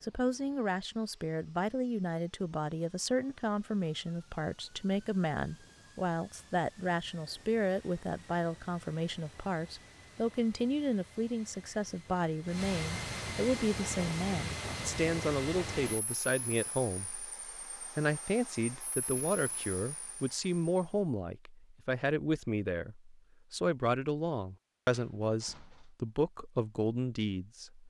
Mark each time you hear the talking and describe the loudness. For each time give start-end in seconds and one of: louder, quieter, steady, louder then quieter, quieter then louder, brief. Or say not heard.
0.0-27.8 steady.